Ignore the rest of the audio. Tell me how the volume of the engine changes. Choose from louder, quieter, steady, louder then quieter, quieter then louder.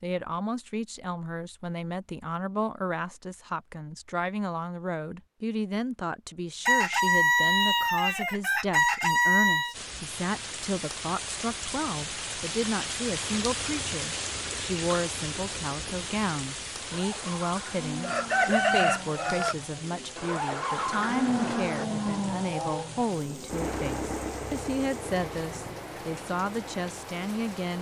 louder then quieter.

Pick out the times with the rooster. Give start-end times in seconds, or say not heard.
6.7-9.8, 18.0-19.6.